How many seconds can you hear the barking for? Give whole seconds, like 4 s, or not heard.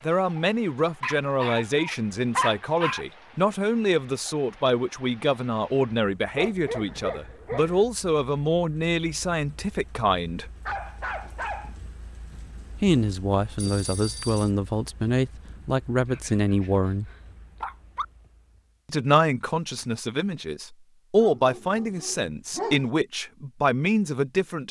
8 s.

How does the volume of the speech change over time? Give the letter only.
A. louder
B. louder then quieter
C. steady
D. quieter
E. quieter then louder
C.